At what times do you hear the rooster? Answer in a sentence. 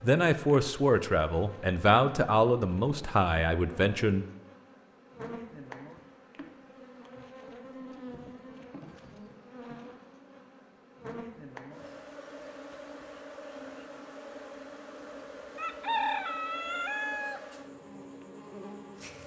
The rooster can be heard from 15.6 to 17.4 s.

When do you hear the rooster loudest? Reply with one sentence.
The loudest moment of the rooster is at 16 seconds.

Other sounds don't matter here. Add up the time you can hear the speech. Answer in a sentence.
The speech can be heard for 4 seconds in total.